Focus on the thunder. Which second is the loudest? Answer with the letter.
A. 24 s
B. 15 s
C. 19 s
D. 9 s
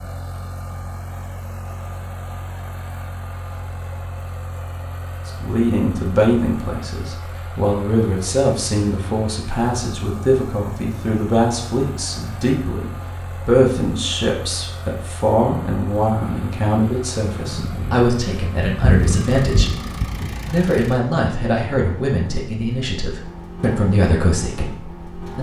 C.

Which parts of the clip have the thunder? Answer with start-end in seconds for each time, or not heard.
17.4-20.6.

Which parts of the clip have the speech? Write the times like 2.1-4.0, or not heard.
5.2-19.8, 20.4-25.3.